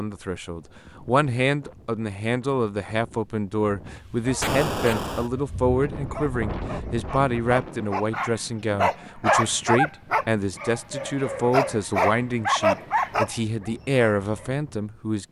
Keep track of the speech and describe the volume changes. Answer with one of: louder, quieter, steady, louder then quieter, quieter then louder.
steady.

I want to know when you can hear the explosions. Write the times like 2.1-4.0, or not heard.
4.4-5.3.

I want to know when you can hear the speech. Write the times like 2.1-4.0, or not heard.
0.0-15.2.